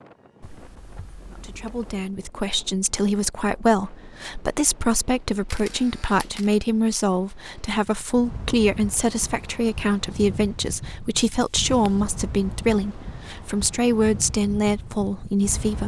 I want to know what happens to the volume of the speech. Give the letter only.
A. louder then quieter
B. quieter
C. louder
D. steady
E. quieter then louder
D.